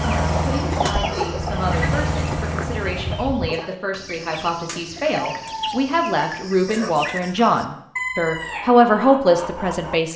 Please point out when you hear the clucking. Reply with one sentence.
You can hear the clucking from 0.0 to 9.9 s.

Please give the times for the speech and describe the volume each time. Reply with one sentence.
The speech can be heard from 0.0 to 10.1 s, getting louder.